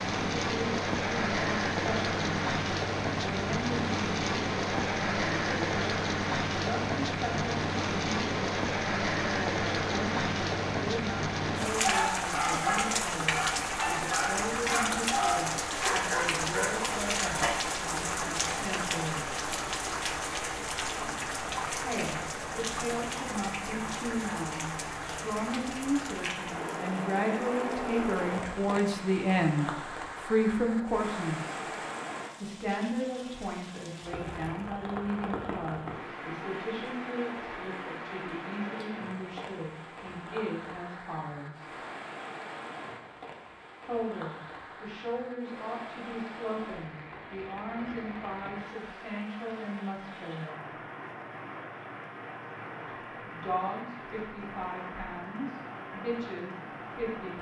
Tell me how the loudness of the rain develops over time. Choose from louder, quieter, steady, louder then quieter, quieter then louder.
quieter.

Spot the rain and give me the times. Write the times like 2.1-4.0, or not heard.
0.0-57.3.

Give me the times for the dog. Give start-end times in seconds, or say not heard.
11.8-17.5.